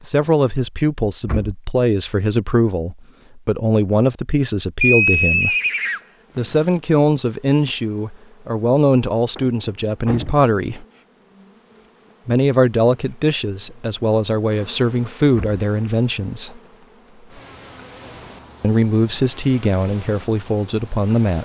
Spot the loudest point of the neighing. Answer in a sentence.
The loudest moment of the neighing is at 5 seconds.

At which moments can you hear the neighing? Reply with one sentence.
You can hear the neighing from 4.8 to 6.7 s.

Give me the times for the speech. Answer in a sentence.
You can hear the speech from 0.0 to 5.5 s, from 6.3 to 10.8 s, from 12.2 to 16.6 s and from 18.6 to 21.4 s.